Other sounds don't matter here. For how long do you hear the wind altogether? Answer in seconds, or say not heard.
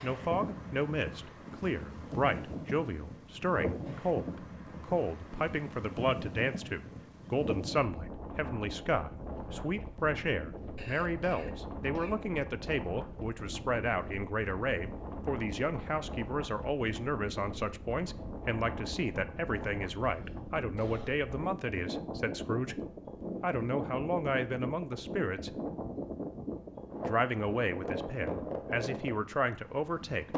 30 s.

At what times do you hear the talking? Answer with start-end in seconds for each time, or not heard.
0.0-22.8, 23.4-25.6, 27.1-30.3.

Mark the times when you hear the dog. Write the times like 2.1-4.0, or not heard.
not heard.